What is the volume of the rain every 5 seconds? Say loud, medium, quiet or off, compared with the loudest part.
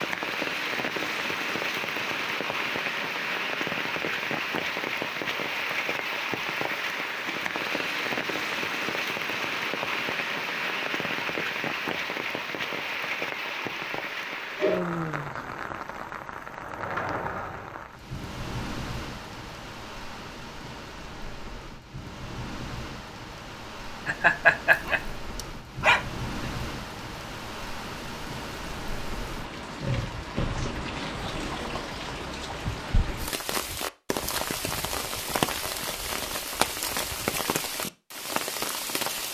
loud, loud, loud, medium, medium, medium, loud, loud.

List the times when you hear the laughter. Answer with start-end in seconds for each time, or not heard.
24.1-25.0.